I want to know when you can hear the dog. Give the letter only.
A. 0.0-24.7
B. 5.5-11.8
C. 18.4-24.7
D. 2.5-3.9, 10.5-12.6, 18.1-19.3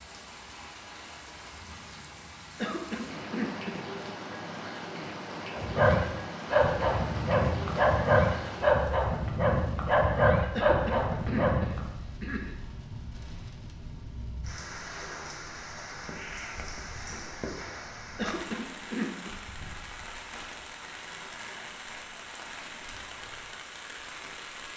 B.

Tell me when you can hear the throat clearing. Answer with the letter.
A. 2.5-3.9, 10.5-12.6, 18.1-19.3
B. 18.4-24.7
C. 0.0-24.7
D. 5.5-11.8
A.